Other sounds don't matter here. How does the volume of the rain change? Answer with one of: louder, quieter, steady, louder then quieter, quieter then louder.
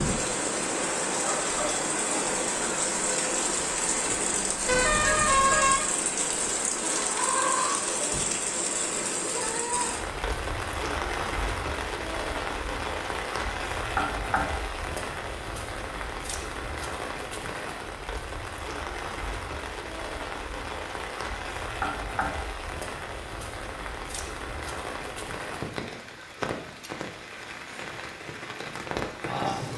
quieter.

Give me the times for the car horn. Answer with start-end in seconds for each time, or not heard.
4.7-5.9.